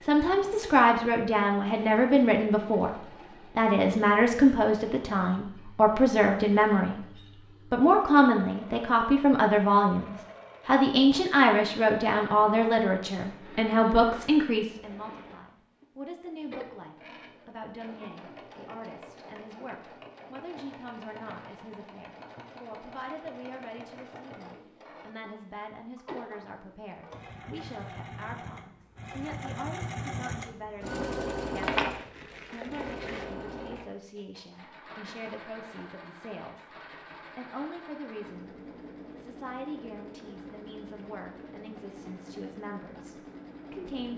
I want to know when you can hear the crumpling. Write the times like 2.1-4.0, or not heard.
31.6-33.3.